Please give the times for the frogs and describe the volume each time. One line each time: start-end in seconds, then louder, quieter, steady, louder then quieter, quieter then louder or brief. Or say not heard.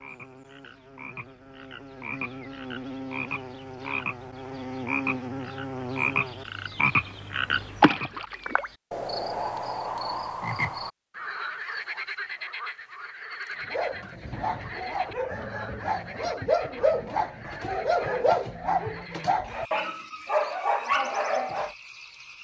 0.0-22.3 louder then quieter.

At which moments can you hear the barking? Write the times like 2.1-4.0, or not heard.
13.6-21.8.